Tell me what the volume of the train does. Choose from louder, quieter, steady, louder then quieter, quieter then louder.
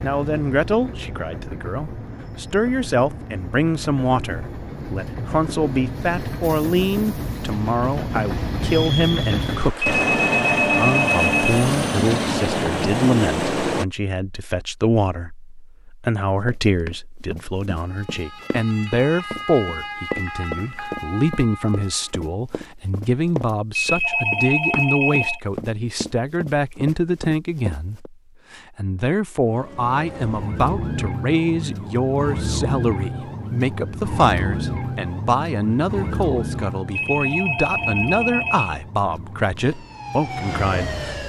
louder.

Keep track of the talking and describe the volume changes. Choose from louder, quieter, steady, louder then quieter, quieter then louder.
steady.